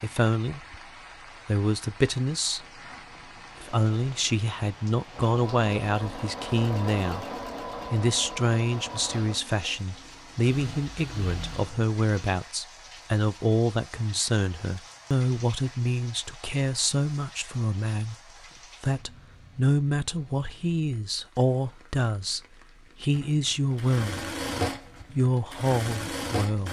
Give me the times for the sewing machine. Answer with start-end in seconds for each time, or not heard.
5.1-12.3, 23.1-26.6.